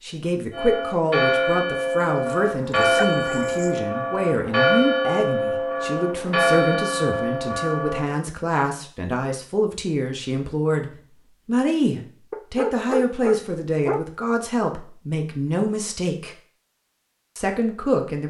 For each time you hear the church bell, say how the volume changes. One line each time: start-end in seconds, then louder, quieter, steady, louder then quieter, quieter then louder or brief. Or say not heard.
0.5-8.2 steady.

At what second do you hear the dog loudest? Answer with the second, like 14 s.
13 s.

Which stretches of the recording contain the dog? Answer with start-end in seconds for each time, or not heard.
2.1-3.8, 12.3-14.1.